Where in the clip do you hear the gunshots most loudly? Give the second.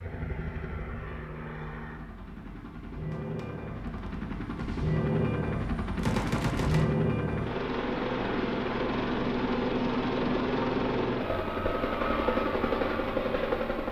6 s.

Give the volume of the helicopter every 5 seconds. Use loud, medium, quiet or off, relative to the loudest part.
medium, loud, loud.